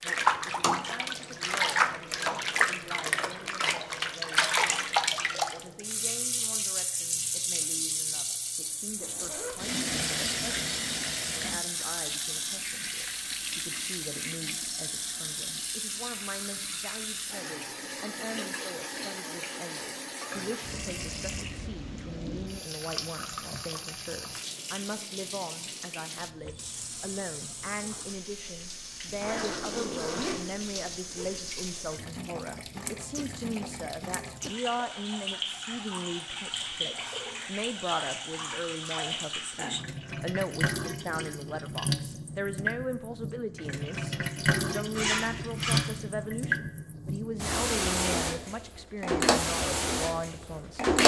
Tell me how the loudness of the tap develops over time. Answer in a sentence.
The volume of the tap goes down, then up.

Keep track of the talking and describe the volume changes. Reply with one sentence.
The loudness of the talking goes up.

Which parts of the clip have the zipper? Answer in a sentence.
The zipper can be heard from 9.0 to 9.6 s, from 29.1 to 31.3 s and from 45.0 to 46.0 s.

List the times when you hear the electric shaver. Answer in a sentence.
The electric shaver can't be heard in this clip.